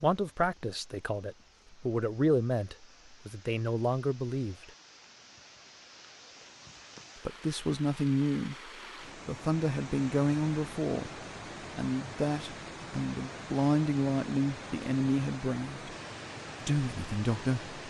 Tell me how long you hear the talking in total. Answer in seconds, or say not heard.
14 s.